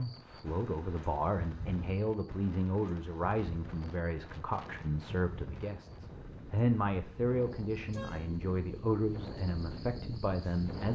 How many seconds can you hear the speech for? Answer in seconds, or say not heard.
11 s.